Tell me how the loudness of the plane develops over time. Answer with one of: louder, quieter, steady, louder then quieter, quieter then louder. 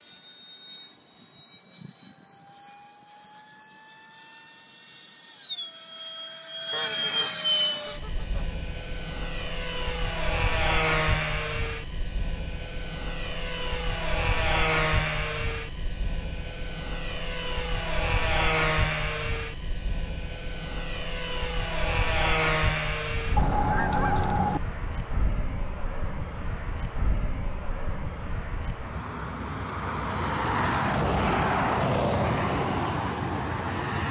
louder.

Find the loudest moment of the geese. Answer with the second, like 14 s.
24 s.